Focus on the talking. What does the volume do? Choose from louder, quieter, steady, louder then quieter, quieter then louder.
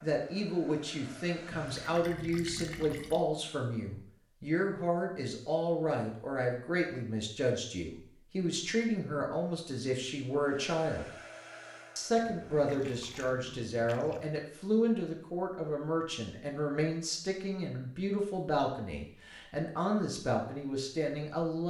steady.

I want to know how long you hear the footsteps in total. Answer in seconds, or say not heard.
not heard.